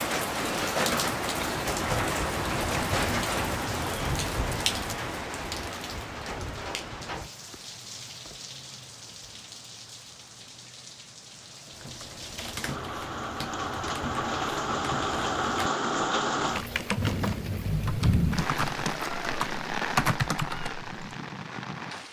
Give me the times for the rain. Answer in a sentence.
The rain can be heard from 0.0 to 22.0 s.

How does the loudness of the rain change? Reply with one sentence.
The volume of the rain goes down, then up.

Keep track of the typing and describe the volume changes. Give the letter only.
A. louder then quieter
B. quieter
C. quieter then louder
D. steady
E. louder
E.